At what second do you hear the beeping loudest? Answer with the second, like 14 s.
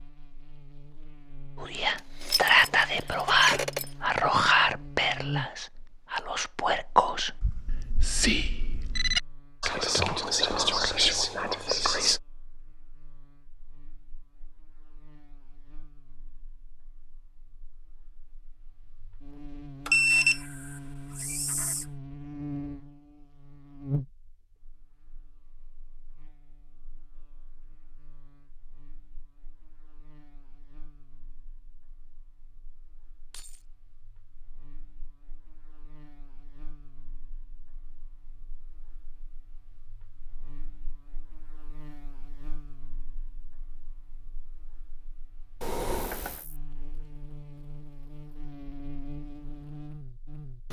20 s.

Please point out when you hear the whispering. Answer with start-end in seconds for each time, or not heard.
1.6-12.2.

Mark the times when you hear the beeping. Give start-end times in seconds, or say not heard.
7.4-9.2, 19.9-21.9, 45.6-46.5.